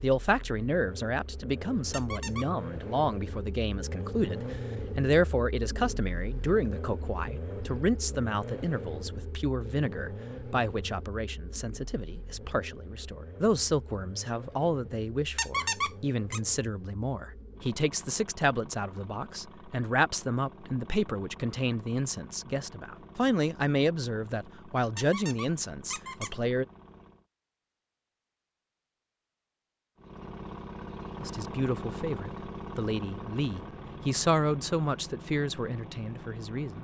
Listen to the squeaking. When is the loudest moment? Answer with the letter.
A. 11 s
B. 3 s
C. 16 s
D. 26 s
C.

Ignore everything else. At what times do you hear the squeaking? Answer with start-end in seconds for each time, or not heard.
1.9-2.5, 15.3-16.4, 24.9-26.4.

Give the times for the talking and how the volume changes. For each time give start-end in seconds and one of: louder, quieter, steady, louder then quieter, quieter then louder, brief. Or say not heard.
0.0-26.6 steady
31.2-36.7 louder then quieter.